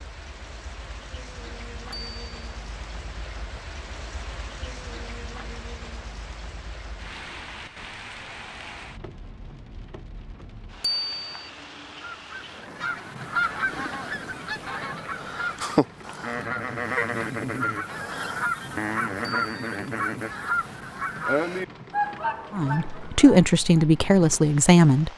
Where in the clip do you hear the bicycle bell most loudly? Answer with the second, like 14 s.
11 s.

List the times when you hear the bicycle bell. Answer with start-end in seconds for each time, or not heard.
1.9-2.4, 10.8-11.5, 19.2-19.9.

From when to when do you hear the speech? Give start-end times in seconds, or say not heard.
22.5-25.1.